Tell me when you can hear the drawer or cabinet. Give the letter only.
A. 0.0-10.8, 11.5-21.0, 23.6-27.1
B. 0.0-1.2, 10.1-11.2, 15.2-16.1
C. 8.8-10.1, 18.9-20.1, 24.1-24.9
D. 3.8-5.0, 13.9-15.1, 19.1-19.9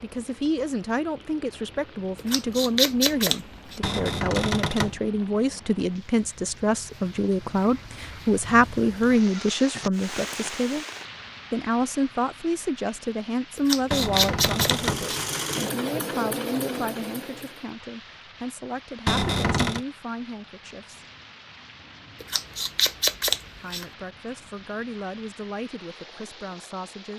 D.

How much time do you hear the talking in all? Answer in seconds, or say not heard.
24 s.